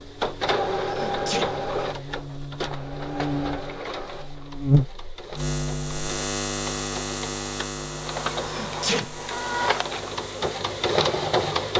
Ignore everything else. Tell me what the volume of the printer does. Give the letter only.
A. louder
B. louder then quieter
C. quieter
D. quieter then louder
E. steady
D.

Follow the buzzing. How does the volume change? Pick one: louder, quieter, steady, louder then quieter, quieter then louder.
louder then quieter.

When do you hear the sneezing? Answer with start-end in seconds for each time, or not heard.
0.8-1.5, 8.3-9.1.